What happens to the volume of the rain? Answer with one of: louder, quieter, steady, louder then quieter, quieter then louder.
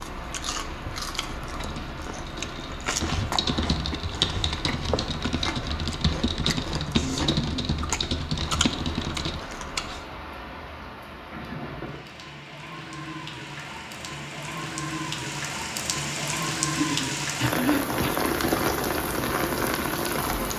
louder.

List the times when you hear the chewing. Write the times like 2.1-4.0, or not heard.
0.0-10.1.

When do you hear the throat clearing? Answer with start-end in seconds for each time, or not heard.
16.8-18.2.